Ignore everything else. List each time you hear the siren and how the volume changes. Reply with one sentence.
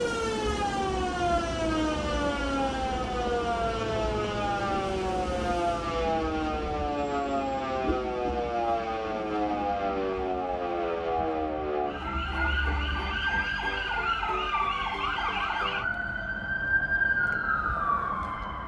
The siren can be heard from 0.0 to 18.6 s, at a steady volume.